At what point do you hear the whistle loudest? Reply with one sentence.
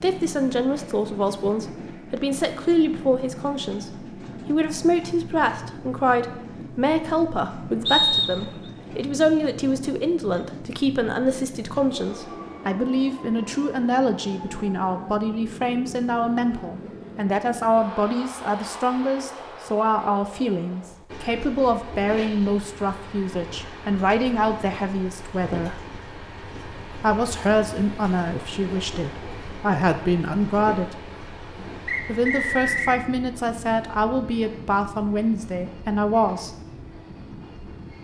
The volume of the whistle peaks at 8 seconds.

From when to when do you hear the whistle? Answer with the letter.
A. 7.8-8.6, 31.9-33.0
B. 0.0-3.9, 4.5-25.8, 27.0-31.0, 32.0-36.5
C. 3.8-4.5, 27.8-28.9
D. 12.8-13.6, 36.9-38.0
A.